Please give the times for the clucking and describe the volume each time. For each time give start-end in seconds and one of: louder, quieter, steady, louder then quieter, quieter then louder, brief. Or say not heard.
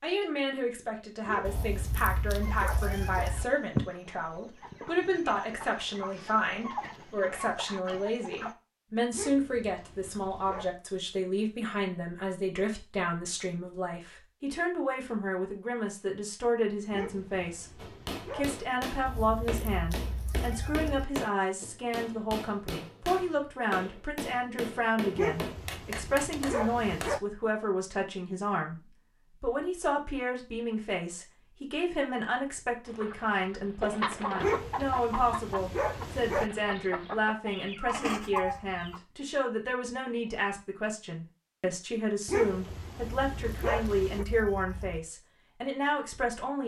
2.4-8.6 quieter then louder
32.9-39.0 quieter then louder.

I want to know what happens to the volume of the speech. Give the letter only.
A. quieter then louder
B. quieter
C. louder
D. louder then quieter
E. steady
E.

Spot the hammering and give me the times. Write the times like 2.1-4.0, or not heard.
17.8-27.1.